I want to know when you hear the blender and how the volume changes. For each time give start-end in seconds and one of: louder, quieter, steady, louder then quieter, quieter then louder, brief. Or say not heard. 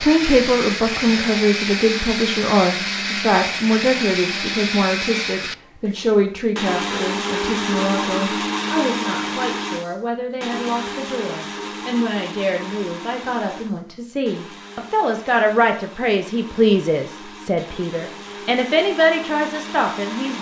0.0-20.3 quieter.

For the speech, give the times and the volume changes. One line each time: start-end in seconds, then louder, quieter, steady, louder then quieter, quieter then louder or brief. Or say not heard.
0.0-20.3 quieter then louder.